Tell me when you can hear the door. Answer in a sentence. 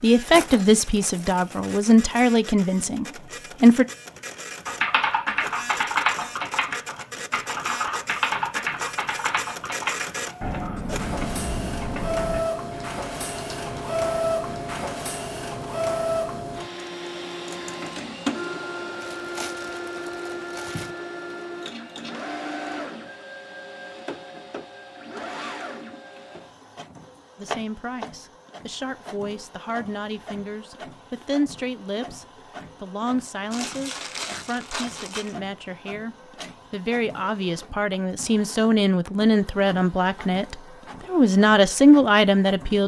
You can't hear the door here.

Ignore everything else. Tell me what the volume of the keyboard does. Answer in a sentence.
The volume of the keyboard goes down.